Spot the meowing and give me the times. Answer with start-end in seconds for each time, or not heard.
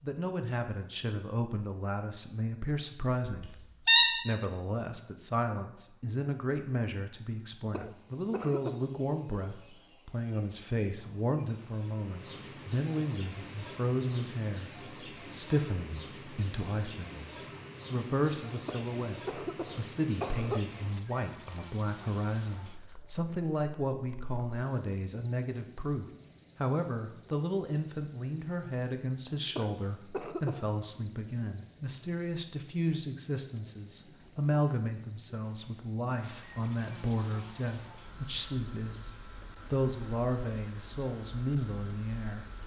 3.2-4.2.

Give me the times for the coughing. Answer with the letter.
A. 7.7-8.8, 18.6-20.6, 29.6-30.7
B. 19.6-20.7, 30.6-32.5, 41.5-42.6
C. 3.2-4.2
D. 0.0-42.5
A.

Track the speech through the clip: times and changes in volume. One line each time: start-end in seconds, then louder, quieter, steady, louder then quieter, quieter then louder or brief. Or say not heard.
0.0-42.5 steady.